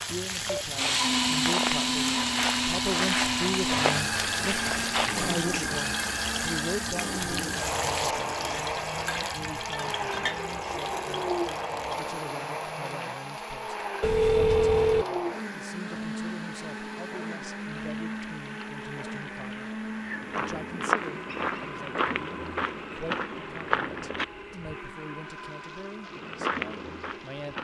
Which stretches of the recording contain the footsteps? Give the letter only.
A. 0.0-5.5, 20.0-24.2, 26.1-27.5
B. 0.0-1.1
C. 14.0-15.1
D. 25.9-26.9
A.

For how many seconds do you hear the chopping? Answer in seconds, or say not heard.
not heard.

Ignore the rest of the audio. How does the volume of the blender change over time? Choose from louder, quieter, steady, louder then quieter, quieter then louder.
quieter.